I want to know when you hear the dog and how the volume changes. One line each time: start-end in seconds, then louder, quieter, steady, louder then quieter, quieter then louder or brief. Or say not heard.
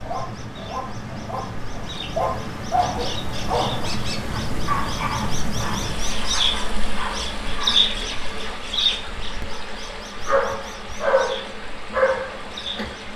0.0-7.9 louder then quieter
10.2-12.9 brief.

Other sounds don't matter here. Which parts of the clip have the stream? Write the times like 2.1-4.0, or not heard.
0.0-13.1.